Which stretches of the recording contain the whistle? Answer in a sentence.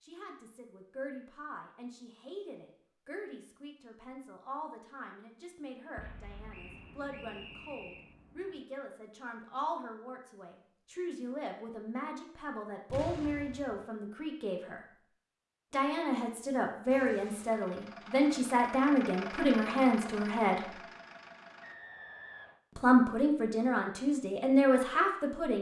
You can hear the whistle from 6.5 to 8.2 s and from 21.6 to 22.6 s.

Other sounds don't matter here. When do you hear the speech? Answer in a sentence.
The speech can be heard from 0.0 to 14.8 s, from 15.7 to 20.8 s and from 22.8 to 25.5 s.